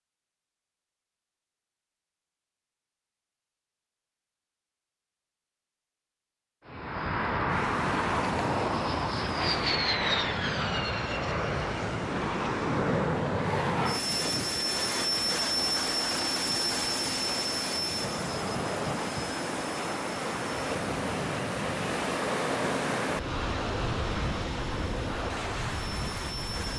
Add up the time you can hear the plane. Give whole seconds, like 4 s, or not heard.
20 s.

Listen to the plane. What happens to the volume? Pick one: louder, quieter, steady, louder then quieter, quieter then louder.
quieter.